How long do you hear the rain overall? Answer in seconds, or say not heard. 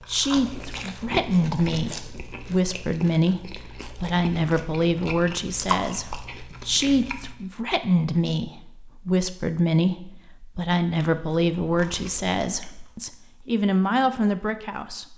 not heard.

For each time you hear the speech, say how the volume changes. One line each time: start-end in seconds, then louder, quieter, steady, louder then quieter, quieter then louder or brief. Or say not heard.
0.1-15.1 steady.